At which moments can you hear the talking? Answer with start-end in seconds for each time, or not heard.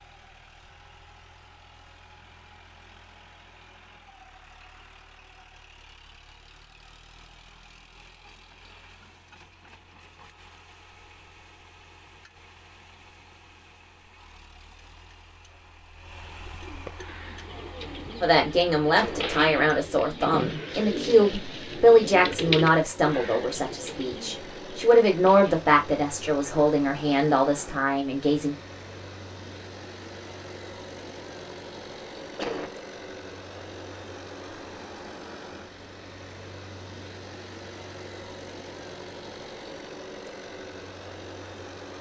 18.2-28.6.